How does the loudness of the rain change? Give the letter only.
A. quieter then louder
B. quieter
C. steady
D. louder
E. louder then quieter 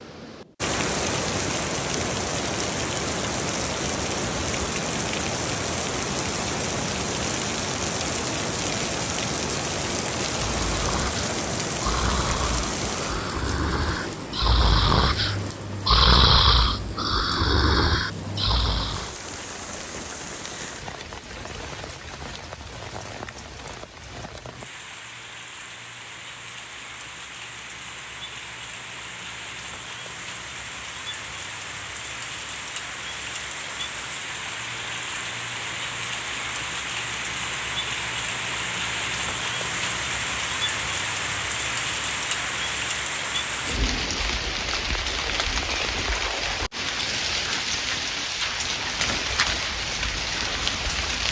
A.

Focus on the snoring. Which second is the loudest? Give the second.
16 s.